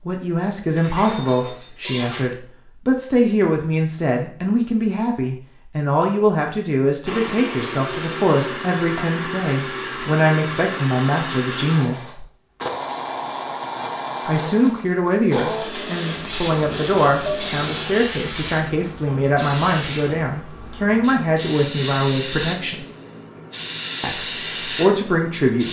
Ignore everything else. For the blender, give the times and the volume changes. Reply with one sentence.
You can hear the blender from 7.0 to 17.7 s, at a steady volume.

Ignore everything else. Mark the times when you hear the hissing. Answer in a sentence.
You can hear the hissing from 16.1 to 25.6 s.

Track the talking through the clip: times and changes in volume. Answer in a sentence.
The talking can be heard from 0.1 to 12.2 s, at a steady volume; from 14.2 to 22.9 s, at a steady volume; and briefly from 24.0 to 25.6 s.